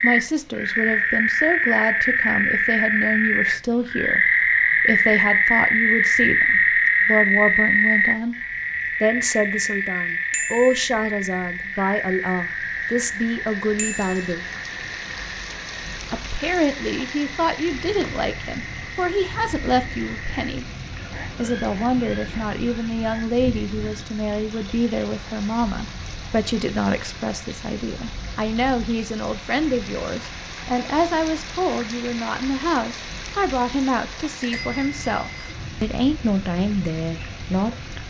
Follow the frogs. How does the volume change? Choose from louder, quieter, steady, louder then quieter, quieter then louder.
quieter.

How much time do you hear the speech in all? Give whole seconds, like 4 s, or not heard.
35 s.